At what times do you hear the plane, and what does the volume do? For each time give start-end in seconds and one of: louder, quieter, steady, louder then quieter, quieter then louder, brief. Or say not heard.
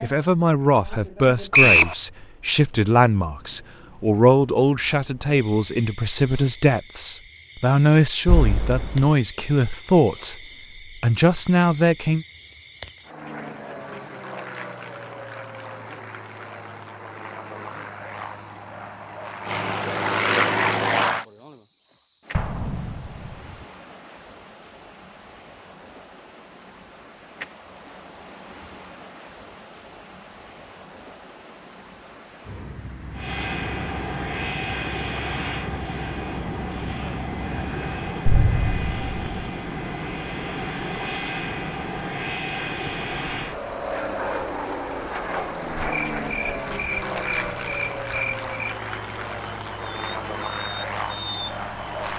13.0-21.2 louder
33.1-52.1 steady.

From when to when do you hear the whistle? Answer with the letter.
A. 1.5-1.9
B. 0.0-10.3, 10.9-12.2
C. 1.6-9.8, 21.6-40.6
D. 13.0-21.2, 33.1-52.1
A.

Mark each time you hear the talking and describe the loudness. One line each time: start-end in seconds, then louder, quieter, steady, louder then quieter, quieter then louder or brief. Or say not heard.
0.0-10.3 steady
10.9-12.2 brief.